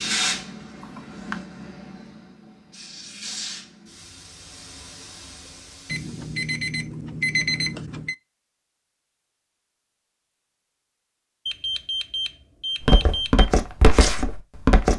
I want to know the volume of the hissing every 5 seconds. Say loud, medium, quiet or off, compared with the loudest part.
loud, quiet, off.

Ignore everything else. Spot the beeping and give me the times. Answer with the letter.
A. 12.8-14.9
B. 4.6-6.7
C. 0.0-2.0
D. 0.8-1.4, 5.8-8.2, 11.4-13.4
D.